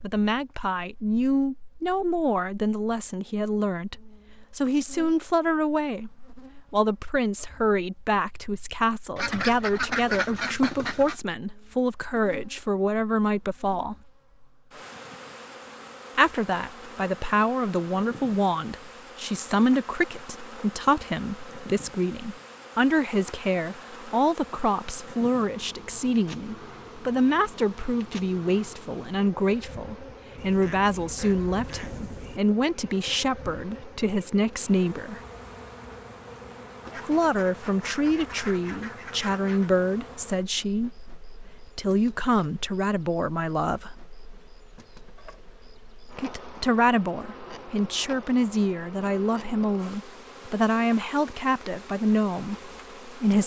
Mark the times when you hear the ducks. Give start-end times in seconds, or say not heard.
9.2-11.2, 30.4-32.4, 36.9-39.7.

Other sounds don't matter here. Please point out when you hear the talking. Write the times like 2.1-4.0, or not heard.
0.0-13.9, 16.1-35.2, 37.0-44.0, 46.1-53.4.